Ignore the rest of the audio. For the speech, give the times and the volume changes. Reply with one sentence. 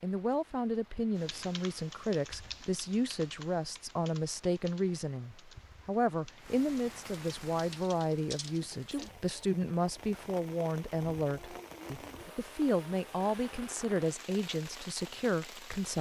The speech can be heard from 0.0 to 15.9 s, at a steady volume.